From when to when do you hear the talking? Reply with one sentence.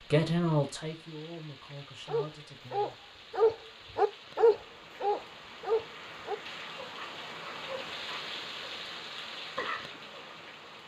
You can hear the talking from 0.0 to 3.0 s.